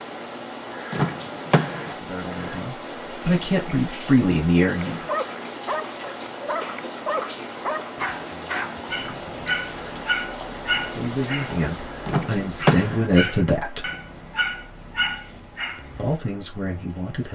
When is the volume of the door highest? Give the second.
13 s.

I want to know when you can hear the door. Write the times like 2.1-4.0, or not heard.
0.9-1.9, 12.1-13.1.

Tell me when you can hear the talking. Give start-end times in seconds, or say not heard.
1.9-5.0, 10.8-13.8, 15.9-17.2.